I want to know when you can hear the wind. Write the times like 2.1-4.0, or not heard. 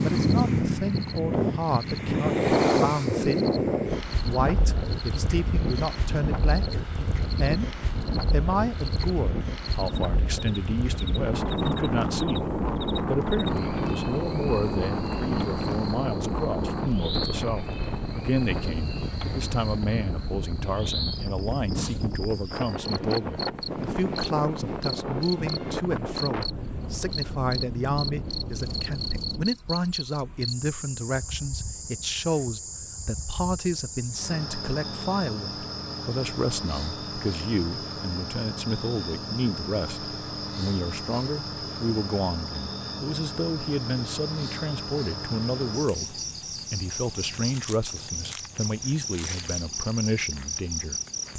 0.0-29.4.